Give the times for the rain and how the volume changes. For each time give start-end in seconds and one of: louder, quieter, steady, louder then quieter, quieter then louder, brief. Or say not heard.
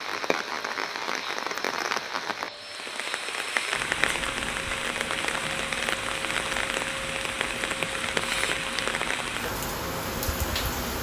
0.0-10.9 steady.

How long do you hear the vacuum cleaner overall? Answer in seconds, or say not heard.
11 s.